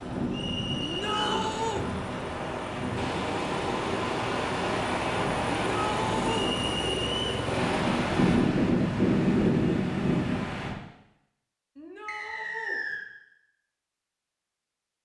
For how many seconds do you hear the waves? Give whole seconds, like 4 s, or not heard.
11 s.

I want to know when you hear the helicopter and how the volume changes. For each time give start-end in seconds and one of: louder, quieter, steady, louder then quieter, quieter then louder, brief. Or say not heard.
0.0-8.3 louder.